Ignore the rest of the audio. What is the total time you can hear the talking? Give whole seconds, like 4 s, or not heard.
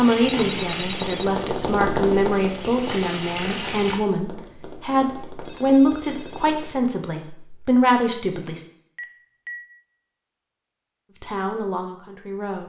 10 s.